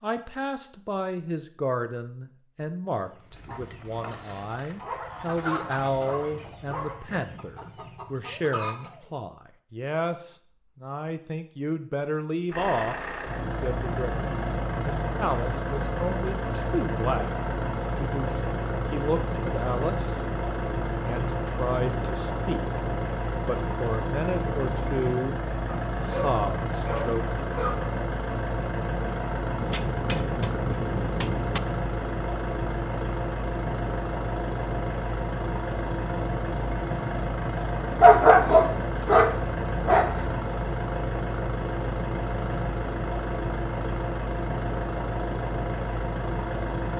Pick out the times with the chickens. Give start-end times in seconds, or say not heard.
3.2-9.1.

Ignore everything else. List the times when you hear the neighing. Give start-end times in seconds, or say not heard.
not heard.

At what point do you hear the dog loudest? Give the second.
38 s.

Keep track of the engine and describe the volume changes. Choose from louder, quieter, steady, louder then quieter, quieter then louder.
steady.